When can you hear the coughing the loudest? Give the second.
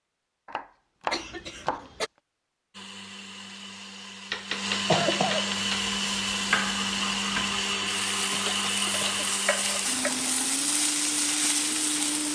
5 s.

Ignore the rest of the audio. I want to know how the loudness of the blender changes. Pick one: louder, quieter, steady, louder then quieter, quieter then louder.
louder then quieter.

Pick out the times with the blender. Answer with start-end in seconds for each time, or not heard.
2.7-12.2.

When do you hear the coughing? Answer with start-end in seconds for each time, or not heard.
1.1-2.1, 4.7-5.5, 8.3-9.2.